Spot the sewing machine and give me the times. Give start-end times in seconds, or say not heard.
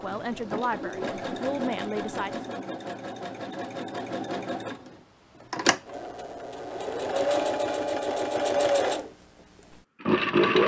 0.0-9.1, 10.0-10.6.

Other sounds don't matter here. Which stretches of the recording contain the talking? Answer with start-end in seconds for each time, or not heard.
0.0-2.6.